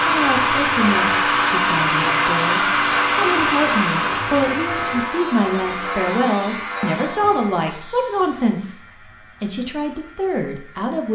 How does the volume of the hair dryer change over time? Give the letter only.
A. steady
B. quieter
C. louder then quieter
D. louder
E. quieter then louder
B.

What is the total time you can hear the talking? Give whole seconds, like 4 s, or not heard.
11 s.